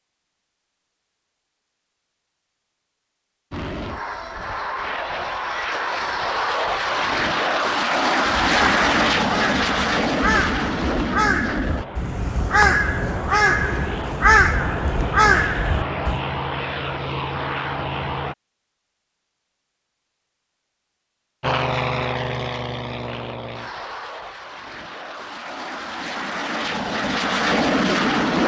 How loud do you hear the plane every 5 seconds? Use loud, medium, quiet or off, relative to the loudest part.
medium, loud, medium, medium, medium, loud.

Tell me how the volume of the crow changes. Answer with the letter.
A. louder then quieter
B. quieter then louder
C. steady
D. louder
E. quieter
D.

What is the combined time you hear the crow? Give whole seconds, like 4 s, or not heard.
8 s.